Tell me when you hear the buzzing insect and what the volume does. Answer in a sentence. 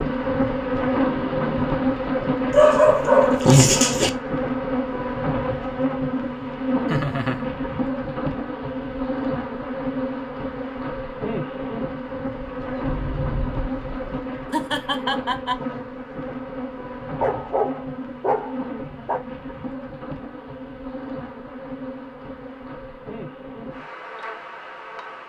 You can hear the buzzing insect from 0.0 to 25.2 s, getting quieter.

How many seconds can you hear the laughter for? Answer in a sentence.
The laughter can be heard for 2 seconds in total.